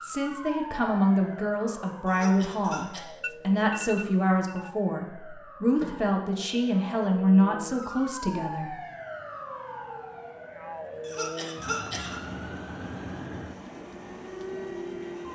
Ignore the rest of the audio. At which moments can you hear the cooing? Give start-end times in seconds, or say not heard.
not heard.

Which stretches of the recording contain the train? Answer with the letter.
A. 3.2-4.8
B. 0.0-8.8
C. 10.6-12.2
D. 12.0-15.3
D.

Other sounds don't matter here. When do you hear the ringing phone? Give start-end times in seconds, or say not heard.
3.2-4.8.